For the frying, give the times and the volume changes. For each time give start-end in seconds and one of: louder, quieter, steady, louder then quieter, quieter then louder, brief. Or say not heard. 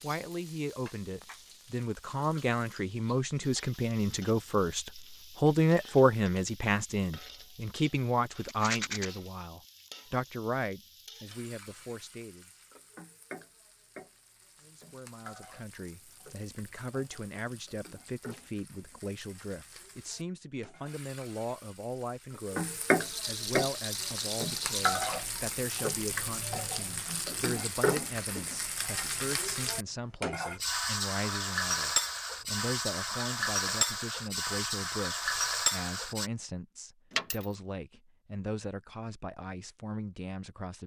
0.0-36.3 louder.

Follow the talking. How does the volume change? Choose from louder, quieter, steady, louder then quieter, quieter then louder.
quieter.